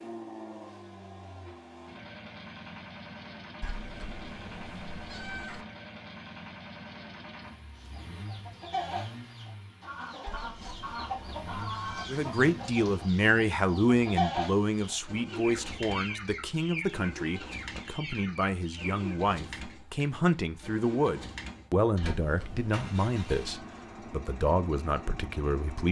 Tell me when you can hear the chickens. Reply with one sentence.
You can hear the chickens from 7.8 to 19.2 s.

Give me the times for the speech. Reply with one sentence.
The speech can be heard from 12.1 to 25.8 s.